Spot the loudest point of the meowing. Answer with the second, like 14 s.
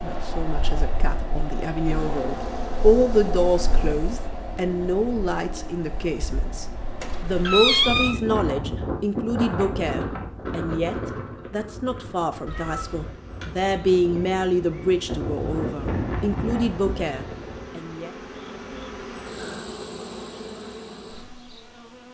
8 s.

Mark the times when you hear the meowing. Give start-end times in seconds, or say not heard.
7.0-8.2, 12.4-13.2.